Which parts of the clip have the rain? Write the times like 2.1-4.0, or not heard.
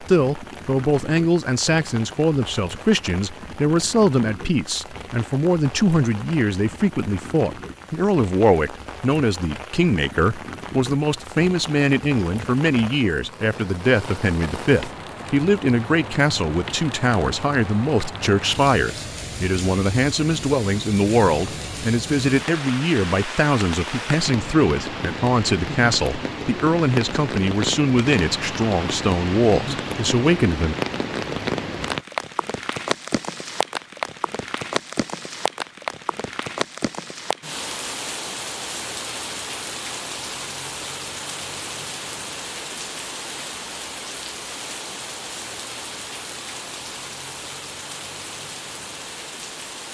0.0-49.8.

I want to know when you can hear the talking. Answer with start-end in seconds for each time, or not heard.
0.0-30.8.